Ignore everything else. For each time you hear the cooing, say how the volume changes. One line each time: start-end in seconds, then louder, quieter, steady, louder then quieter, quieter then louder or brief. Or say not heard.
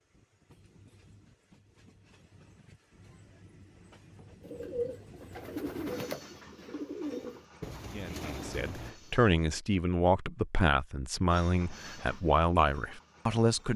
4.4-9.7 quieter.